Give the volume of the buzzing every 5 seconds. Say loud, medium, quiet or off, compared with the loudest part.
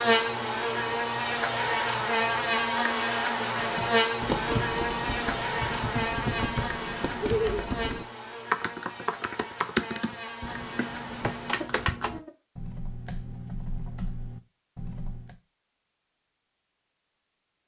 loud, medium, quiet, off.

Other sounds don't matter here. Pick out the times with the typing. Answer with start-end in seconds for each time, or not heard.
3.5-15.4.